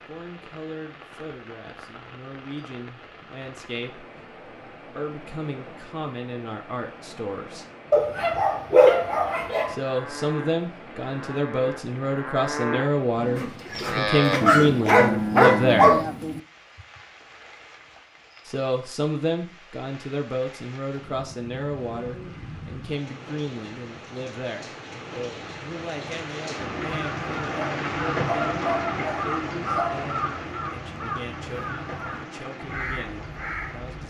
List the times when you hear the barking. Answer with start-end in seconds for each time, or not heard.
7.9-9.8, 13.3-16.0, 27.5-30.1.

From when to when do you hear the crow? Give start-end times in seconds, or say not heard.
26.8-34.0.